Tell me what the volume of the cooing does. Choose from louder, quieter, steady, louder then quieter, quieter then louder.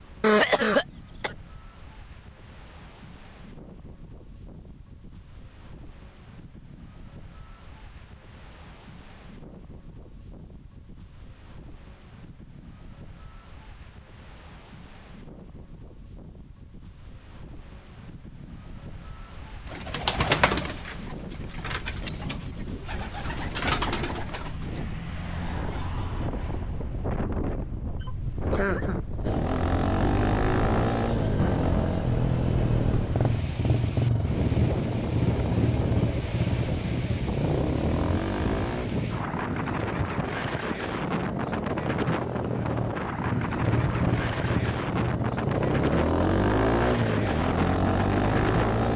quieter then louder.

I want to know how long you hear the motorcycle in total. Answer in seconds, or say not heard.
20 s.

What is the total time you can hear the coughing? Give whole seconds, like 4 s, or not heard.
2 s.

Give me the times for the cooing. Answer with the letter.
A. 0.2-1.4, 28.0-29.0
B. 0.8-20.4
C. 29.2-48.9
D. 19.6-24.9
D.